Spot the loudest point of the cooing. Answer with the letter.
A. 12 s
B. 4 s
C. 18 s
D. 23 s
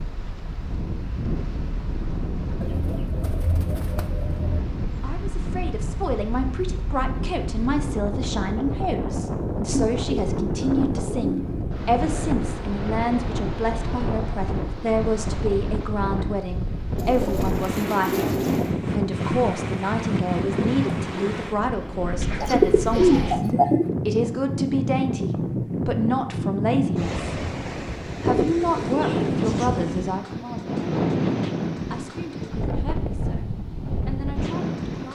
D.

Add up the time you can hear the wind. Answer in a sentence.
You can hear the wind for 35 seconds altogether.